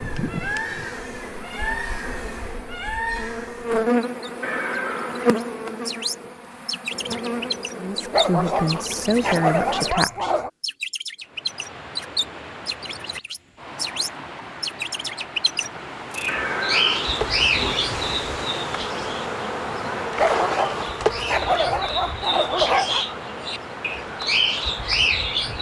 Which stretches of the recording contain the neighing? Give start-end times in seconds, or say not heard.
4.4-5.4, 16.2-17.8.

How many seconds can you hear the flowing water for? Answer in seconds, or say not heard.
14 s.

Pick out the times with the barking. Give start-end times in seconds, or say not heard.
8.1-10.5, 20.1-23.1.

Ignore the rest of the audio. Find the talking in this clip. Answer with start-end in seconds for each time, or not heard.
7.8-10.3.